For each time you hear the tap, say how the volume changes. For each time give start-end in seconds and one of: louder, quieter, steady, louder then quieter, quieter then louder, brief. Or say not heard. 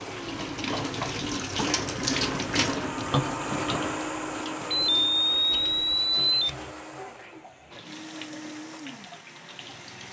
0.0-10.0 quieter.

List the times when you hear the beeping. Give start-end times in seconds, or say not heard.
4.7-6.3.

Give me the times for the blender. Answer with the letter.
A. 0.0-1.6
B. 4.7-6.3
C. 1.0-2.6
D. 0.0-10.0
D.